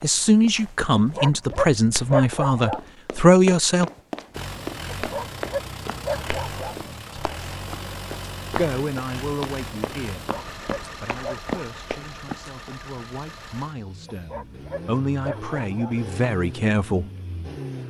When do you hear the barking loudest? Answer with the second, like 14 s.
2 s.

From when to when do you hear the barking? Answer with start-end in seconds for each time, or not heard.
0.9-2.8, 4.9-6.8, 10.2-11.6, 14.1-15.9.